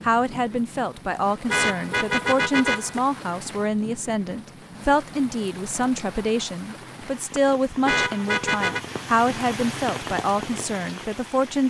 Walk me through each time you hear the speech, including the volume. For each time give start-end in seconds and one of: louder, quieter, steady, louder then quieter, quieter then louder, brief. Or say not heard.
0.0-11.6 steady.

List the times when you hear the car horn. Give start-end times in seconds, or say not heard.
1.4-3.0, 7.8-8.8.